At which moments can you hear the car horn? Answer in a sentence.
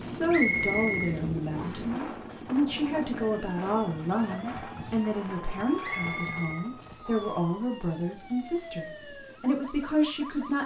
The car horn can't be heard in this clip.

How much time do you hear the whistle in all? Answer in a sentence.
The whistle can be heard for 3 seconds in total.